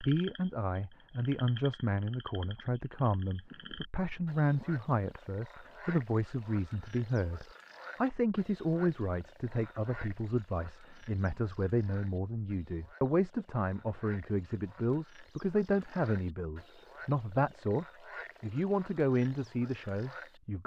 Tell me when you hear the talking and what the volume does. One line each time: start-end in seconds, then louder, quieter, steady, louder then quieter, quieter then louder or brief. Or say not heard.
0.0-20.6 steady.